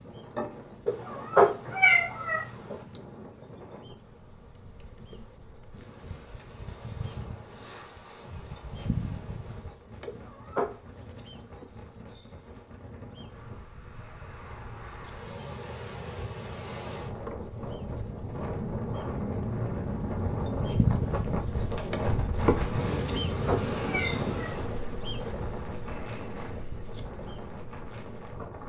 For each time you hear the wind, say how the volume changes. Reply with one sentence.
You can hear the wind from 0.0 to 28.6 s, getting louder.